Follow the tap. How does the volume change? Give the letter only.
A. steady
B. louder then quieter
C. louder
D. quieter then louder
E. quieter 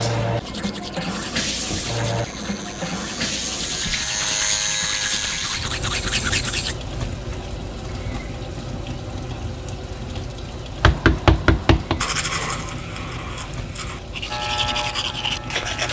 E.